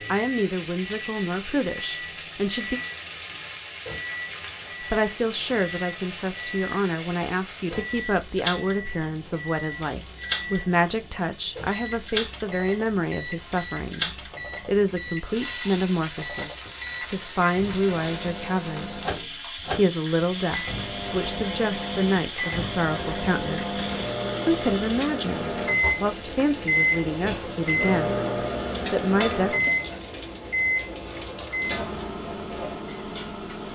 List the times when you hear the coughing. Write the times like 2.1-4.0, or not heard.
not heard.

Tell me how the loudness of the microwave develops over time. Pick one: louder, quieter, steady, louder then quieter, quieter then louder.
louder.